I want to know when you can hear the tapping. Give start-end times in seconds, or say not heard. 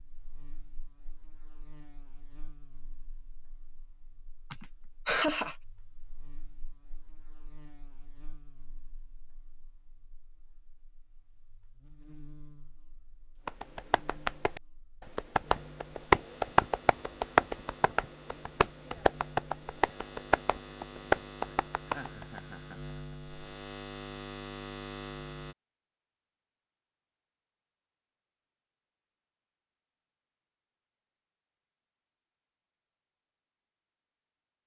13.4-22.4.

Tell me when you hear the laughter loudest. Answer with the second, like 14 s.
5 s.